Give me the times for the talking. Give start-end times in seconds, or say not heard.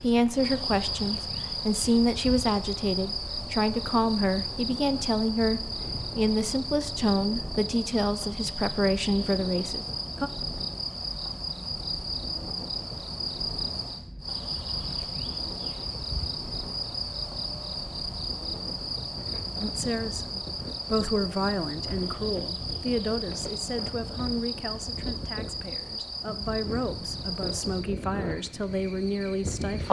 0.0-10.3, 19.6-29.8.